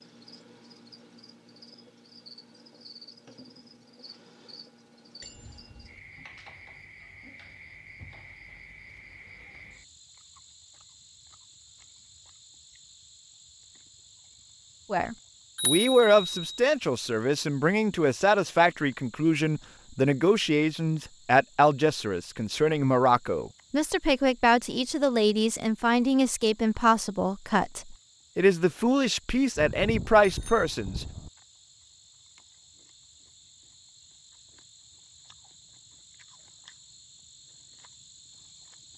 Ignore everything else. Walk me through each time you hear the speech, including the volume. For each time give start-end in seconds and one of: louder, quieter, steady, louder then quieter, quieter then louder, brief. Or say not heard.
14.9-31.1 steady.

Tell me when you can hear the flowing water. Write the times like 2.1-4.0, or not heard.
not heard.